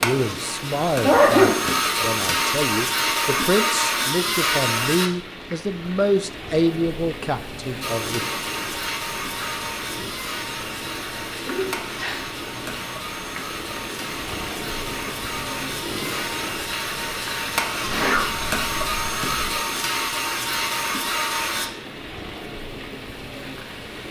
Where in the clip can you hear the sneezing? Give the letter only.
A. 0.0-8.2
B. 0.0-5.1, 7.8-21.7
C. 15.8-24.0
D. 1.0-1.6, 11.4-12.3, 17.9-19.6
D.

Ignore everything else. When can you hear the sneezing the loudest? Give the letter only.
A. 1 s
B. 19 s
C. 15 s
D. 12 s
A.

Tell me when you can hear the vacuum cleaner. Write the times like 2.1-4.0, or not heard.
0.0-5.1, 7.8-21.7.